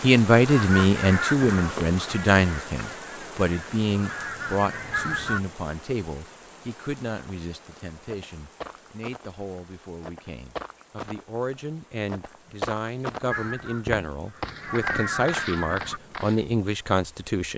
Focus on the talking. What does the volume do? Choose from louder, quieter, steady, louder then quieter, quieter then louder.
quieter then louder.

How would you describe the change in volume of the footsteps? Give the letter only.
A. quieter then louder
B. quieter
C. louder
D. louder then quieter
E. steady
D.